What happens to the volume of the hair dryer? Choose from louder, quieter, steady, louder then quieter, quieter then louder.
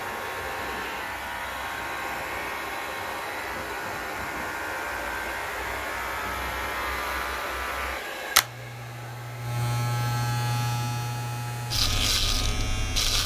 quieter.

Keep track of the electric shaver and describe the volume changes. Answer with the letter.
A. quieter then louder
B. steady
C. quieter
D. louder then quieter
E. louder
E.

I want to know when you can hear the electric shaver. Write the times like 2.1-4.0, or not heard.
0.0-13.2.